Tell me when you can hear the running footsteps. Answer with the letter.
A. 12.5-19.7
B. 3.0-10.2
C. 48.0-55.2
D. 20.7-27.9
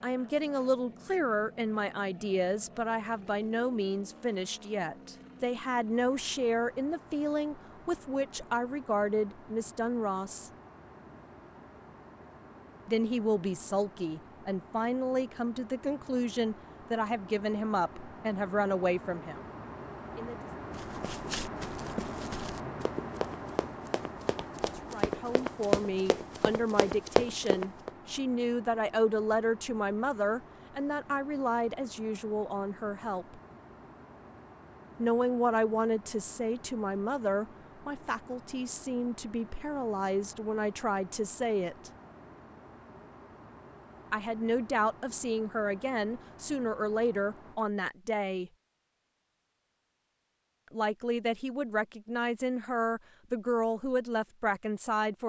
D.